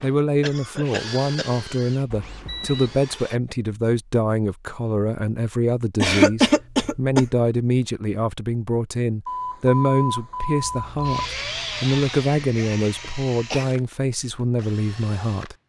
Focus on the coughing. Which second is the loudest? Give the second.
6 s.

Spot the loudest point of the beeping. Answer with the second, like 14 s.
10 s.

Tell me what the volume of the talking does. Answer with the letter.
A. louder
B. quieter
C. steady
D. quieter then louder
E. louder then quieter
C.